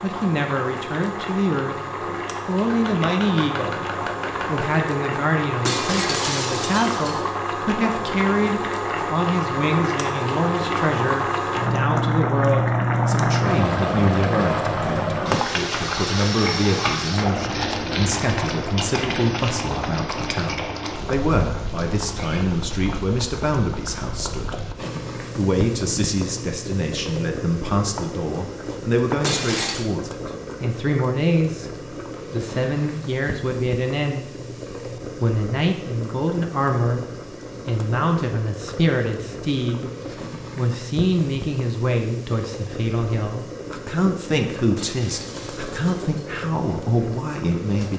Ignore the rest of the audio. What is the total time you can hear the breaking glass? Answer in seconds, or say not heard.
4 s.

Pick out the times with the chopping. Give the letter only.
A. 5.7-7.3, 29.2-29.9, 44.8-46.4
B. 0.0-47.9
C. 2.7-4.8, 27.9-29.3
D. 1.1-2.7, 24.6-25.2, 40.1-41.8
C.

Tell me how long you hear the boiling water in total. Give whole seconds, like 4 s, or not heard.
48 s.